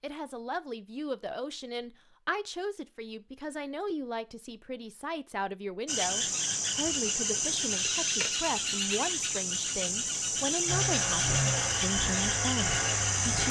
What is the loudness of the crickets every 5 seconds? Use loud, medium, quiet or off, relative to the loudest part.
off, loud, loud.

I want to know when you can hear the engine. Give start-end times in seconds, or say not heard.
10.7-13.4.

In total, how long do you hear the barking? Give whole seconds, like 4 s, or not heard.
not heard.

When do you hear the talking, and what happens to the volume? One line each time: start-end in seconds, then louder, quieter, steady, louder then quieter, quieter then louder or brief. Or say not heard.
0.0-13.4 steady.